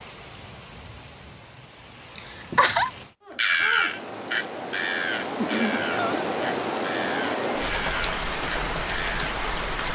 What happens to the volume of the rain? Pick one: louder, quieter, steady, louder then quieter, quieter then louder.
louder.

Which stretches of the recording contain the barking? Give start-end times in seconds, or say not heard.
not heard.